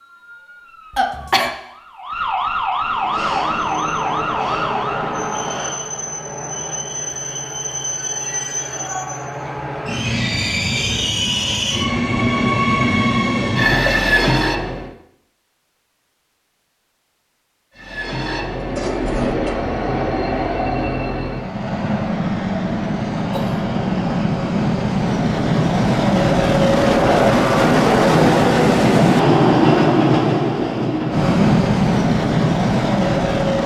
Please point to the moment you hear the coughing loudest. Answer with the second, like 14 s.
1 s.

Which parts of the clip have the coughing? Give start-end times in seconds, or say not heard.
0.9-1.5, 18.6-19.6, 23.1-23.6.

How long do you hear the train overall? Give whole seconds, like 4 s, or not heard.
28 s.